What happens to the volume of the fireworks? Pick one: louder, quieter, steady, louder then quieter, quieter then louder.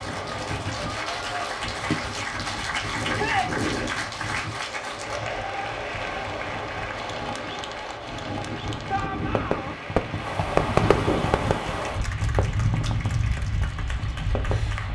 quieter.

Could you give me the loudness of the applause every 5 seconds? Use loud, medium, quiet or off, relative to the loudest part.
loud, medium, medium.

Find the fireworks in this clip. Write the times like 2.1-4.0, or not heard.
9.2-14.8.